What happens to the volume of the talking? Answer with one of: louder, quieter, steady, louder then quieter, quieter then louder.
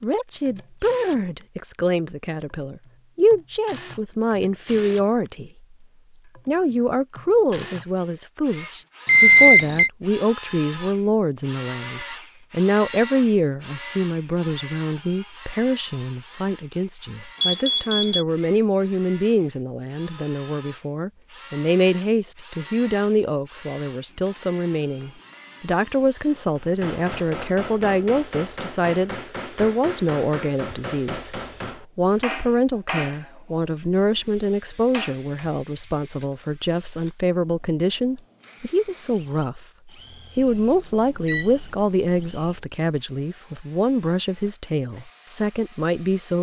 steady.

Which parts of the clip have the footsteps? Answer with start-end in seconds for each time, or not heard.
not heard.